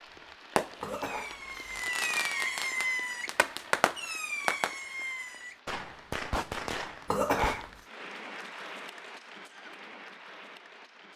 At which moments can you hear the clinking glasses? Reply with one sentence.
You can't hear the clinking glasses here.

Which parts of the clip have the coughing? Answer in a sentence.
The coughing can be heard from 0.8 to 1.9 s and from 7.0 to 7.7 s.